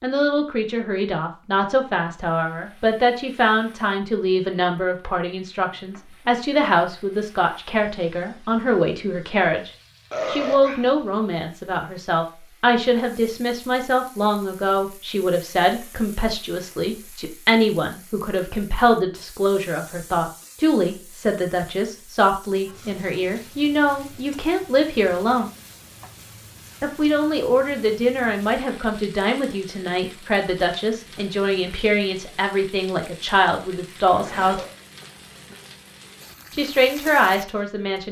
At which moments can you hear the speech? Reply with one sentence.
You can hear the speech from 0.0 to 25.5 s, from 26.8 to 34.6 s and from 36.5 to 38.0 s.